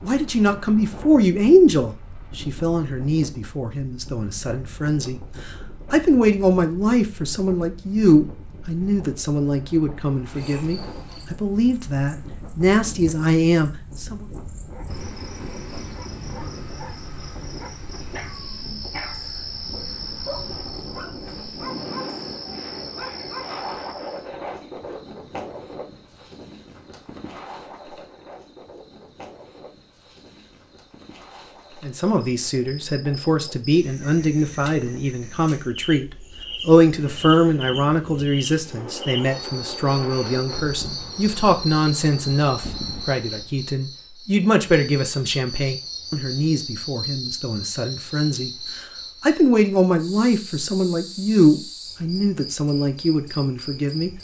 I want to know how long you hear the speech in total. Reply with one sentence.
You can hear the speech for 36 seconds altogether.